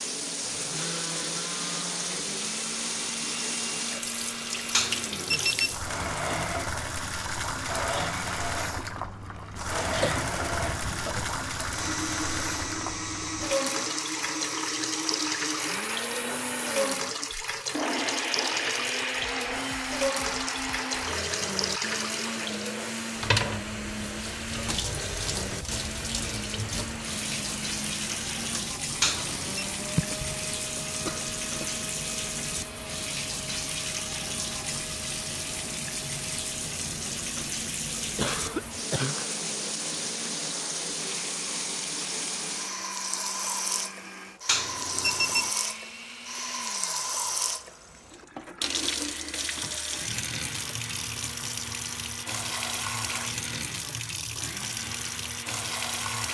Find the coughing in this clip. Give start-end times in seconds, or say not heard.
10.0-11.4, 29.9-31.7, 38.1-39.3.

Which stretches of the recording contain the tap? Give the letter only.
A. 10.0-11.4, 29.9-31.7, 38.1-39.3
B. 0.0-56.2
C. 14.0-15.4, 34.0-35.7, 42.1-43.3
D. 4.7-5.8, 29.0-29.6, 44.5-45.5
B.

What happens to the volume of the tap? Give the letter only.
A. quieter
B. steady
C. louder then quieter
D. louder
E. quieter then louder
B.